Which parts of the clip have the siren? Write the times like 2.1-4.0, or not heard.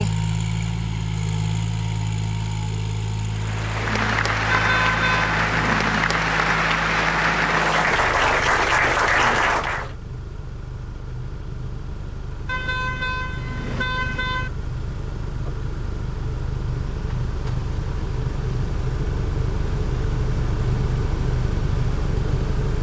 not heard.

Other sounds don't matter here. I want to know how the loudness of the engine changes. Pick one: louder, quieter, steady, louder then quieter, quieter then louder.
quieter then louder.